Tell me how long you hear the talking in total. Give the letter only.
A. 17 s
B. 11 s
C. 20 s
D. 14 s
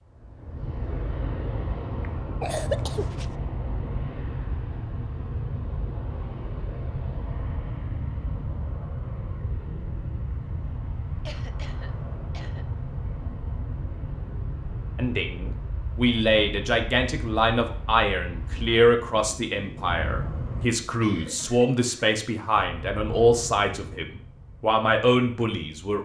B.